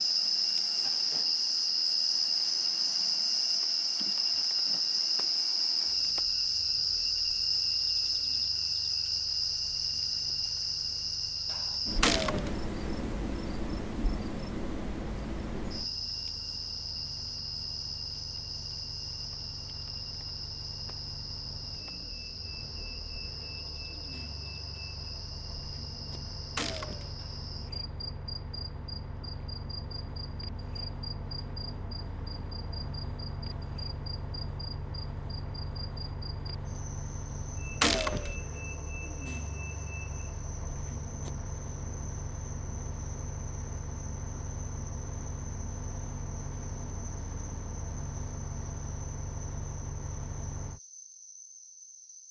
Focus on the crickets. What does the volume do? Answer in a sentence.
The volume of the crickets goes down.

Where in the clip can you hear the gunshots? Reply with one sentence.
You can hear the gunshots from 12.0 to 12.6 s, from 26.6 to 27.1 s and from 37.8 to 38.4 s.